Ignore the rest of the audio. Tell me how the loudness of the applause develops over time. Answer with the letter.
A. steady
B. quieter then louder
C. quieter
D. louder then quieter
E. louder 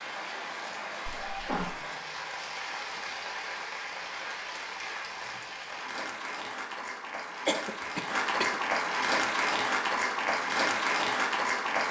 E.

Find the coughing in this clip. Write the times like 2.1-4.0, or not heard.
1.1-1.8, 7.5-8.6.